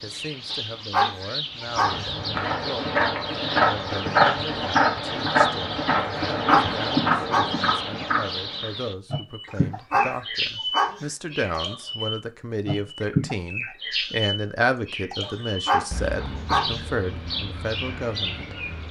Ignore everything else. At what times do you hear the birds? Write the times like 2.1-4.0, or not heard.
0.0-18.8.